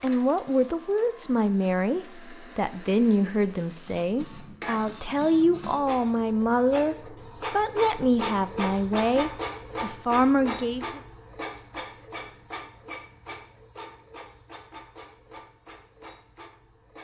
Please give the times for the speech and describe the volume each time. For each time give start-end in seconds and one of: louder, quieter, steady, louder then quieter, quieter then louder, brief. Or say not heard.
0.0-11.0 steady.